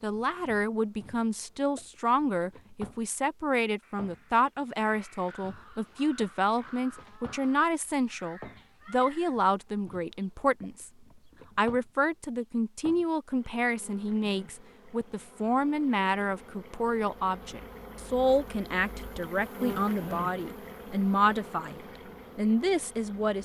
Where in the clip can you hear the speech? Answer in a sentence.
You can hear the speech from 0.0 to 10.9 s and from 11.6 to 23.4 s.